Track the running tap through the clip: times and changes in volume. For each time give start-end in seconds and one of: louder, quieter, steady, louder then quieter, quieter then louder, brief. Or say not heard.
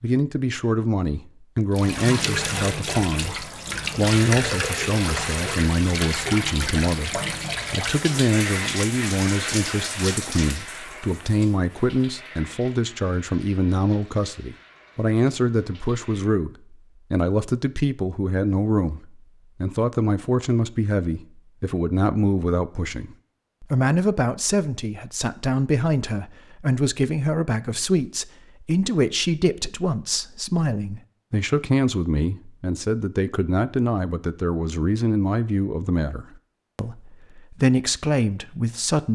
1.7-16.4 quieter.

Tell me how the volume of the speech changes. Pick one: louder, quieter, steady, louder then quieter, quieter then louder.
steady.